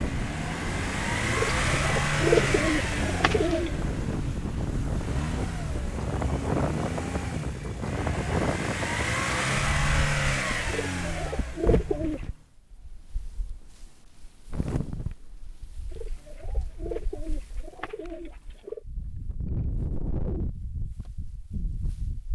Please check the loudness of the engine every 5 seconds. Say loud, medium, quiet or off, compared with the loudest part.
loud, loud, loud, off, off.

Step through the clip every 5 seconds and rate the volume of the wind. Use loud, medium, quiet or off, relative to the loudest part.
loud, loud, medium, medium, medium.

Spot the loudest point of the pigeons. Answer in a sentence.
The volume of the pigeons peaks at 2 seconds.